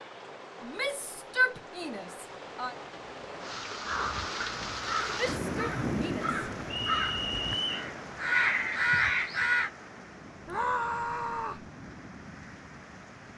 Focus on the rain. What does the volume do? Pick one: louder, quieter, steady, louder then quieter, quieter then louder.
louder then quieter.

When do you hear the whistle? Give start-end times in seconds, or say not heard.
6.7-7.9.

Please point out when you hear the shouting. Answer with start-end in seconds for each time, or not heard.
0.6-2.8, 5.2-6.3, 10.4-11.7.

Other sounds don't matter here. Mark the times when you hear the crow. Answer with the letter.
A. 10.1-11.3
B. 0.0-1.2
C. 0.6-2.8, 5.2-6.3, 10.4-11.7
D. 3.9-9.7
D.